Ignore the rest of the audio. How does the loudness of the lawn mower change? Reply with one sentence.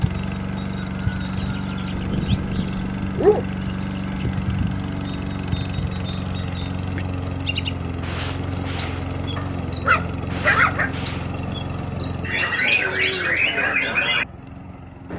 The volume of the lawn mower goes down.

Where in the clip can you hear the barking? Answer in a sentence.
The barking can be heard from 1.9 to 3.5 s and from 9.3 to 10.9 s.